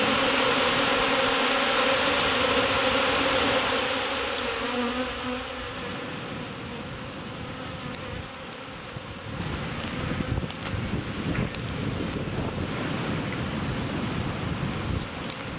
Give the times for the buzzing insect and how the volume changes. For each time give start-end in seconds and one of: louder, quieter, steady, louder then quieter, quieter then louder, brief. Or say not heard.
0.0-15.5 quieter.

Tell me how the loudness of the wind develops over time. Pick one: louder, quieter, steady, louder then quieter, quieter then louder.
louder.